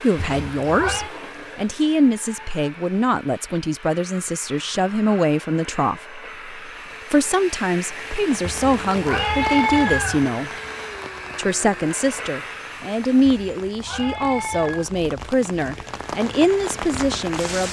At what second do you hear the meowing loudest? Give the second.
10 s.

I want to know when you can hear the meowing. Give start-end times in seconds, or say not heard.
0.1-1.1, 8.4-10.2, 13.2-14.9.